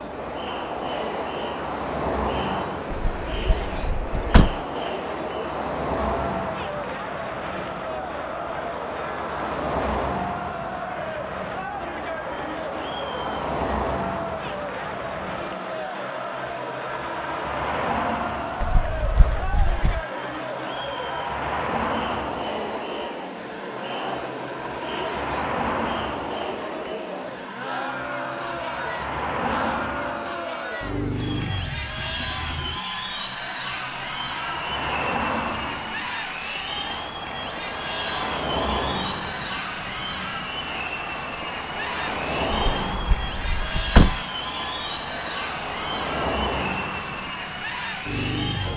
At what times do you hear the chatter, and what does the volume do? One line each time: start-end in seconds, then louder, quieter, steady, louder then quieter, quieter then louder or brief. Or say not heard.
0.0-48.7 steady.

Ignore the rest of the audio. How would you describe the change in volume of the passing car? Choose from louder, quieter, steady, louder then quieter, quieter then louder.
steady.